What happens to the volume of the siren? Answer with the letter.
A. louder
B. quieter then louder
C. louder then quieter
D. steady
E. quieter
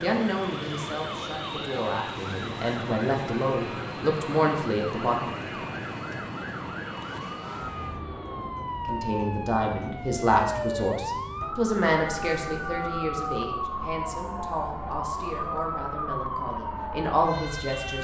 A.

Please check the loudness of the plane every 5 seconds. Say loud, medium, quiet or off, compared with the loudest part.
loud, loud, off, off.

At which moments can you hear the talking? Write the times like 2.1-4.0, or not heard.
0.0-5.5, 8.8-17.9.